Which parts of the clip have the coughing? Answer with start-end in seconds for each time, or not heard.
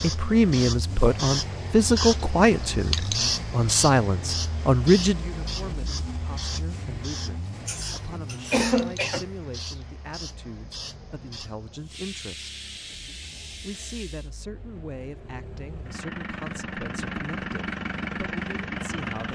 7.7-9.2.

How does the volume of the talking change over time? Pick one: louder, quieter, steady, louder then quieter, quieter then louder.
quieter.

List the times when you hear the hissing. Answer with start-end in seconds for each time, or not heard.
0.0-14.3.